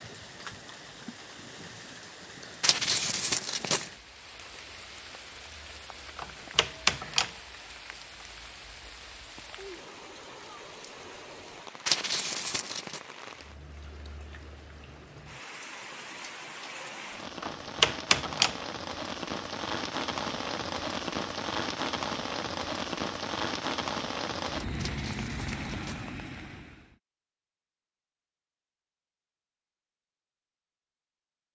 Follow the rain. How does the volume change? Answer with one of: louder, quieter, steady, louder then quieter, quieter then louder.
louder.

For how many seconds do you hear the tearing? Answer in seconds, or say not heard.
4 s.